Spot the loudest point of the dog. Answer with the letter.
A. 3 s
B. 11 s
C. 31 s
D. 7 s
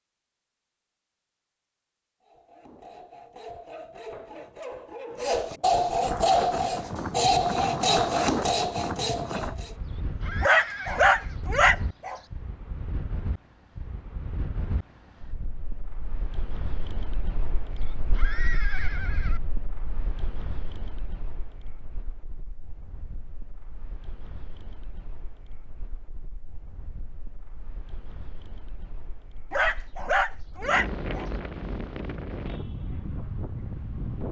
B.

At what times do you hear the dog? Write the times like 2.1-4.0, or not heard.
10.4-12.2, 29.5-31.3.